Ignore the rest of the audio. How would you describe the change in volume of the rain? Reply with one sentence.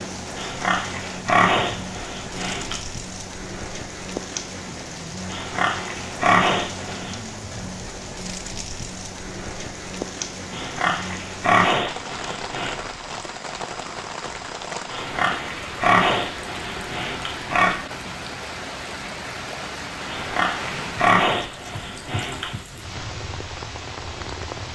The loudness of the rain stays about the same.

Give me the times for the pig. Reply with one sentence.
The pig can be heard from 0.3 to 2.8 s, from 5.3 to 7.2 s, from 10.5 to 12.8 s, from 14.9 to 17.8 s and from 20.1 to 22.6 s.